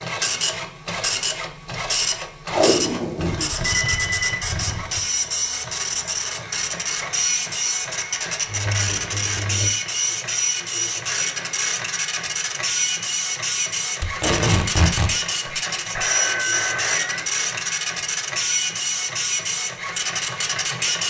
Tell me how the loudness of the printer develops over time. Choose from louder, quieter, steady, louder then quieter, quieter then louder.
steady.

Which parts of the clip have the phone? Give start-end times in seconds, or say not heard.
3.4-5.0, 8.4-9.7, 15.4-17.2.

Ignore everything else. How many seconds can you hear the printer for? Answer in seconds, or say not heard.
21 s.